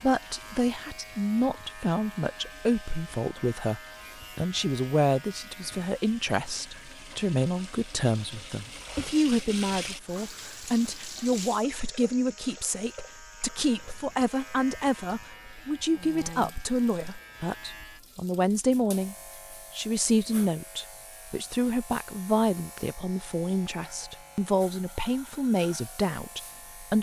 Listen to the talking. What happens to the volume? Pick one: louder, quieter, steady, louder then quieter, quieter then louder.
steady.